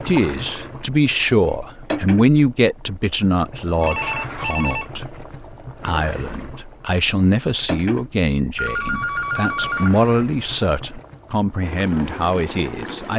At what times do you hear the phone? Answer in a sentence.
The phone can be heard from 3.8 to 4.8 s and from 8.6 to 10.0 s.